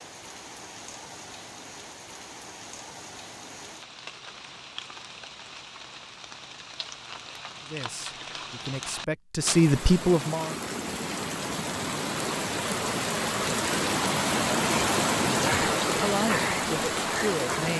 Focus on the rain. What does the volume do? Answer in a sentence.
The loudness of the rain goes up.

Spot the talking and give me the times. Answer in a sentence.
You can hear the talking from 7.7 to 10.6 s and from 15.2 to 17.7 s.